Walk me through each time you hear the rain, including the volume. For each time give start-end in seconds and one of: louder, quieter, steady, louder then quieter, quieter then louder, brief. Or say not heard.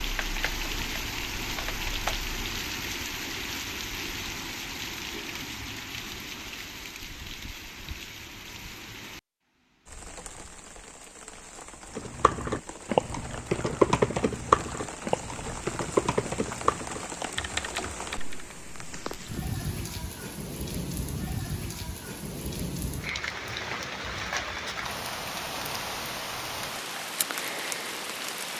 0.0-28.5 quieter then louder.